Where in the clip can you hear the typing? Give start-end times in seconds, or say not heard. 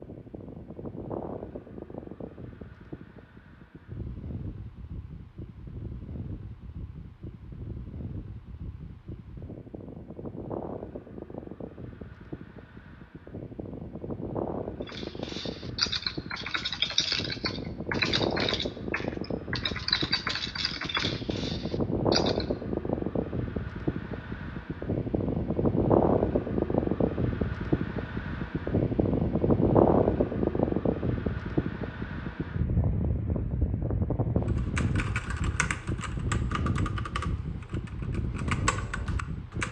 14.8-22.4, 34.5-39.6.